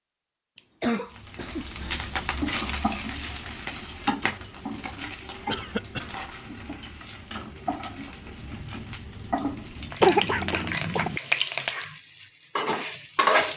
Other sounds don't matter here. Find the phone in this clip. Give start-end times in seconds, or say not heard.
not heard.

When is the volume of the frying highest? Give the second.
13 s.